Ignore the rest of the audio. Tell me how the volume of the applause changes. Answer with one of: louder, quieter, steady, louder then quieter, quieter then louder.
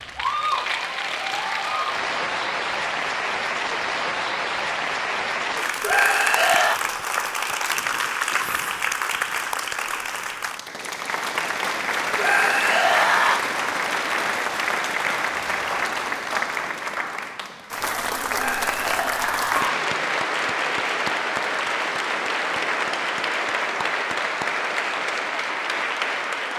steady.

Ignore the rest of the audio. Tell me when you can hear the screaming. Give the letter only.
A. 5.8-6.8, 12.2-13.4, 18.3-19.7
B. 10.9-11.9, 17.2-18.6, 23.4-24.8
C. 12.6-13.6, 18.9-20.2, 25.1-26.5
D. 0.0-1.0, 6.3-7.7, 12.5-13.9
A.